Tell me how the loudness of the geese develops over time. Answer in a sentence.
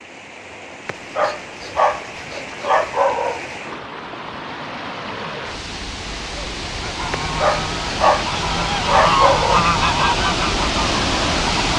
The volume of the geese goes up, then down.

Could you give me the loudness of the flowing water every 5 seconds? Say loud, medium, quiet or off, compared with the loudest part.
quiet, medium, loud.